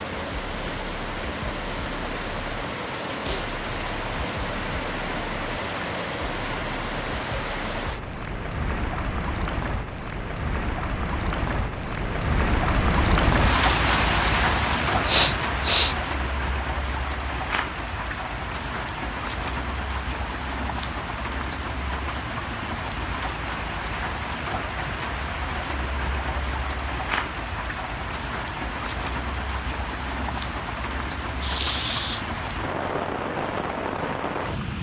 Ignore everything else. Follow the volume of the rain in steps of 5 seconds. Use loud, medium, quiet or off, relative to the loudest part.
medium, medium, loud, medium, medium, medium, medium.